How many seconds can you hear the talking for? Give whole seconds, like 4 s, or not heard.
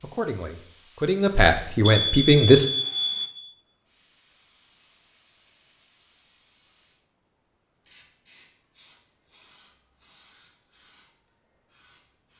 3 s.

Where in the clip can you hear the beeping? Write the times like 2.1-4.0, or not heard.
1.8-3.3.